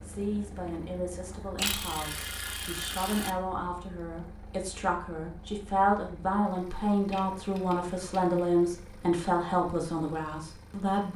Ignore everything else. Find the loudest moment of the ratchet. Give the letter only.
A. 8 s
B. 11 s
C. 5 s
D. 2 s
D.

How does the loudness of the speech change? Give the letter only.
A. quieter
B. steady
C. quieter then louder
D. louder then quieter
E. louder
E.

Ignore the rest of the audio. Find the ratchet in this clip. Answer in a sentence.
The ratchet can be heard from 1.6 to 3.3 s and from 7.1 to 8.4 s.